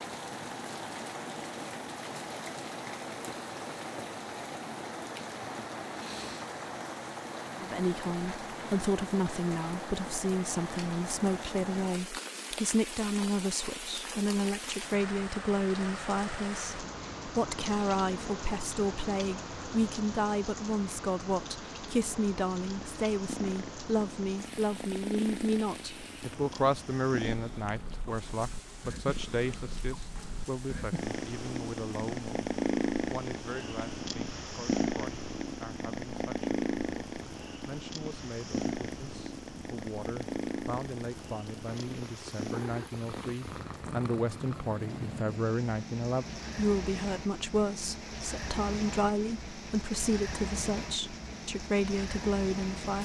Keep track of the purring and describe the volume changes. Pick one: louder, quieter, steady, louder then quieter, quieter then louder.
louder then quieter.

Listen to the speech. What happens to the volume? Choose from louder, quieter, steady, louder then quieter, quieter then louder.
quieter then louder.